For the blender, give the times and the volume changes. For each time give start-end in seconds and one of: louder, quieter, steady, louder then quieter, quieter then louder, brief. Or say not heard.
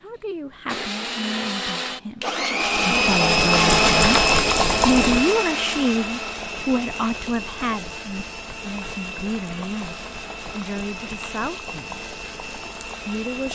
0.0-13.5 louder then quieter.